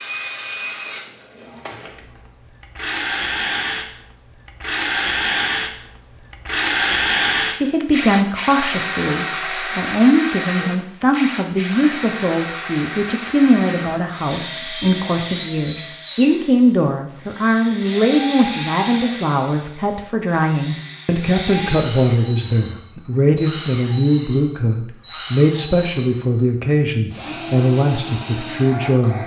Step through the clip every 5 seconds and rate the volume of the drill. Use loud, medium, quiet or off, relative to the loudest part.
medium, loud, medium, medium, medium, medium.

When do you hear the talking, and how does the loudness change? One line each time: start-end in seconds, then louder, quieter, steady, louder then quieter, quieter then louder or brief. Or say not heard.
7.5-29.2 steady.